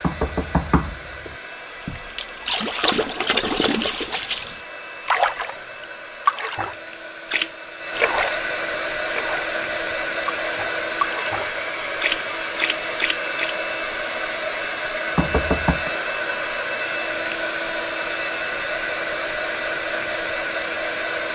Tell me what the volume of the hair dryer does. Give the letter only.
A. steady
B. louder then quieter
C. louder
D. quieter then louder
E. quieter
C.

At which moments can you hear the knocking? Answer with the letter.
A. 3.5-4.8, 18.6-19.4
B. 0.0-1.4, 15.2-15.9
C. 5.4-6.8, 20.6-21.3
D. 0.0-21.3
B.